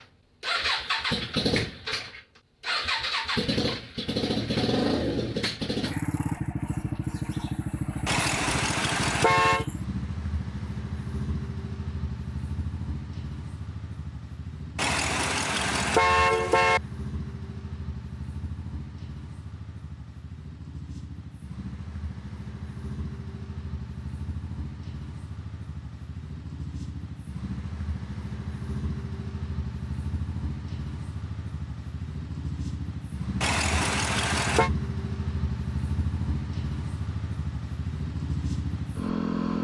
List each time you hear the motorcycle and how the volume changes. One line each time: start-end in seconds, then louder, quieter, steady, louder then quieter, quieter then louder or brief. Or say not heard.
0.0-39.6 quieter then louder.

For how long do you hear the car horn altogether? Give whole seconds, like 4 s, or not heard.
5 s.